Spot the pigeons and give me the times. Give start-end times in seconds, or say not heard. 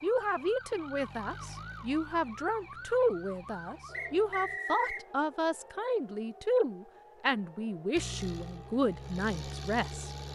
not heard.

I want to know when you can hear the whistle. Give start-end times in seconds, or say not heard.
3.9-5.0.